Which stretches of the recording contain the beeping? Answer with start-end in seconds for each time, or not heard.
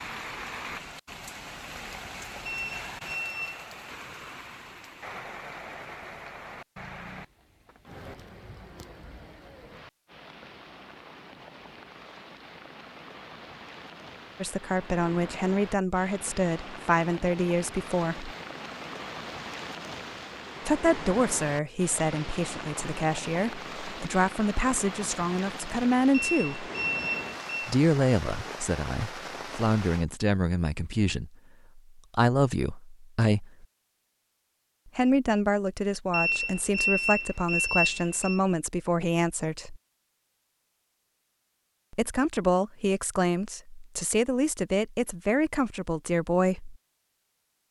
2.5-3.6, 26.1-27.8, 36.1-38.4.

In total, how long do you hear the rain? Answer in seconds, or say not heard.
30 s.